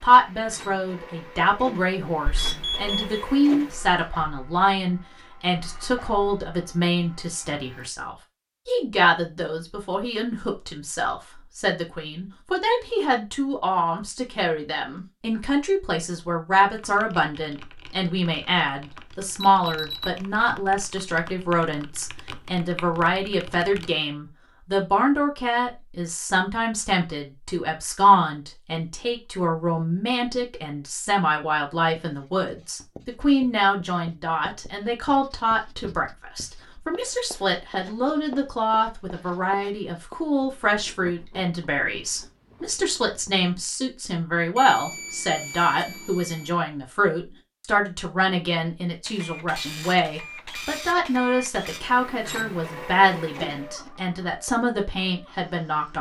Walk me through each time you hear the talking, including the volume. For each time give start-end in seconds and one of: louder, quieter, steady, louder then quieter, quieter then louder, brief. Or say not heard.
0.0-55.9 steady.